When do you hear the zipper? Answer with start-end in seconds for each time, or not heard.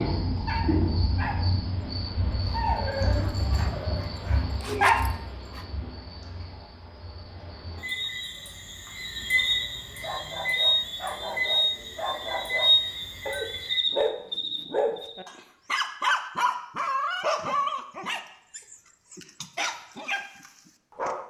4.6-5.2.